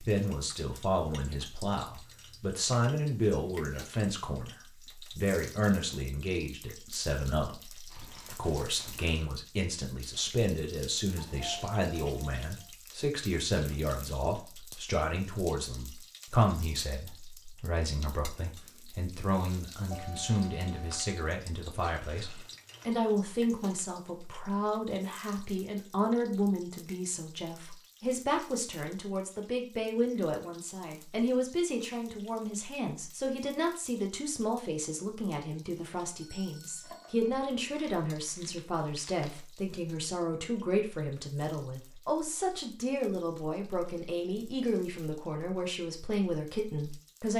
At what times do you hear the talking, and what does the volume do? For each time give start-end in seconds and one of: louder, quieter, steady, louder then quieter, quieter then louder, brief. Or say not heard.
0.0-47.3 steady.